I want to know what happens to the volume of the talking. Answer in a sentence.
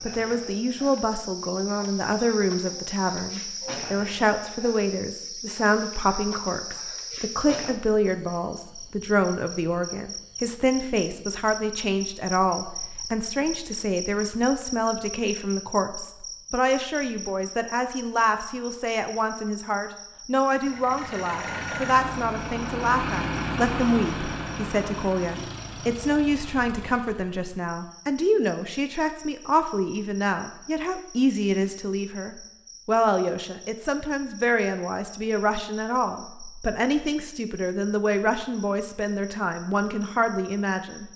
The volume of the talking stays about the same.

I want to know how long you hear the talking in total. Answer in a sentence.
The talking can be heard for 41 seconds in total.